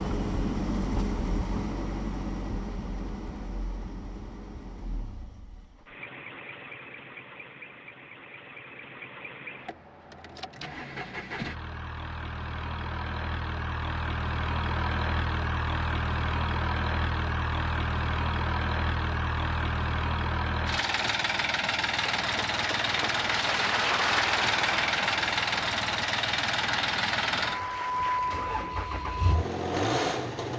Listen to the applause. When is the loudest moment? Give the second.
24 s.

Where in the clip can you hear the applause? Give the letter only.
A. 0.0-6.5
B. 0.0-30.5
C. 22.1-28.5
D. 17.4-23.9
C.